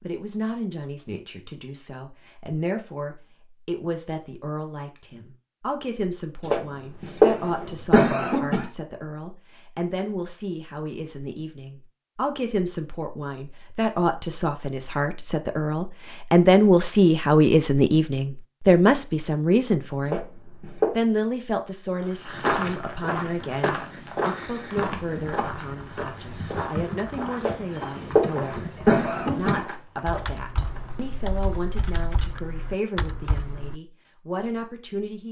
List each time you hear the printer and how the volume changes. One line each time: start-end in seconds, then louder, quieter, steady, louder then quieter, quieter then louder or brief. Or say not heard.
not heard.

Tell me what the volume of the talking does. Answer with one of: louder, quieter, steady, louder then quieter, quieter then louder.
louder then quieter.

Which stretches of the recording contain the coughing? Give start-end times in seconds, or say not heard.
6.5-8.7, 20.1-20.9, 27.4-29.6.